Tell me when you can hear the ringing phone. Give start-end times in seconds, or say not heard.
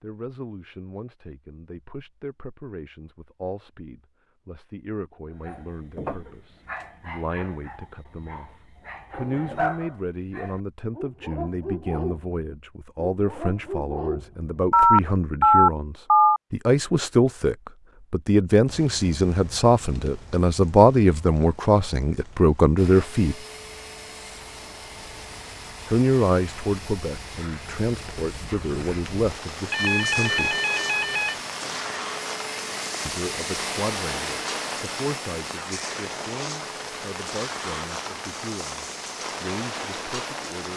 14.7-16.4, 29.7-31.4.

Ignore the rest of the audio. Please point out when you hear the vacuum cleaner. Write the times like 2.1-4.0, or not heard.
22.8-40.7.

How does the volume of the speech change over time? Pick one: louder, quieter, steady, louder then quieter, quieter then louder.
louder then quieter.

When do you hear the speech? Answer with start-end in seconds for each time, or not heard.
0.0-23.4, 25.9-30.6, 33.0-40.7.